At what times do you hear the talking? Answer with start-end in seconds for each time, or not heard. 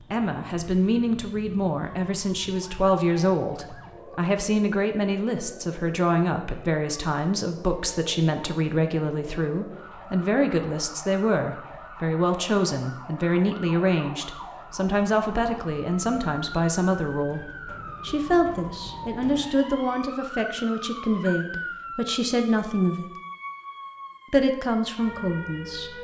0.1-17.4, 18.0-23.1, 24.3-25.9.